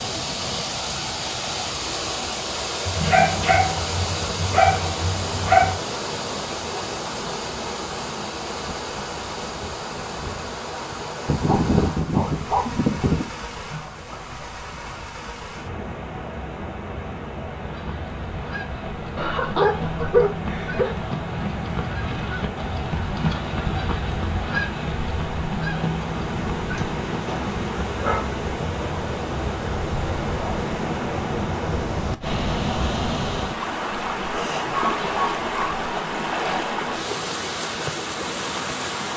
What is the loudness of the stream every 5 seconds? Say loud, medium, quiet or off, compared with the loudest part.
loud, loud, medium, medium, medium, loud, loud, loud.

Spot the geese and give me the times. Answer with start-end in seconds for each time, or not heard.
17.6-28.1.